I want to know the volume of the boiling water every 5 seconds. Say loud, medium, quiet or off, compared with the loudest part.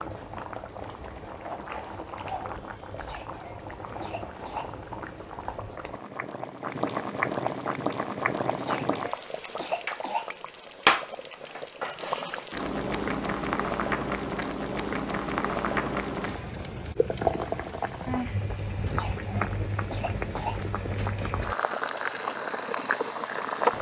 medium, loud, loud, loud, loud.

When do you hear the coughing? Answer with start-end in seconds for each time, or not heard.
3.0-4.8, 8.6-10.3, 18.9-20.6.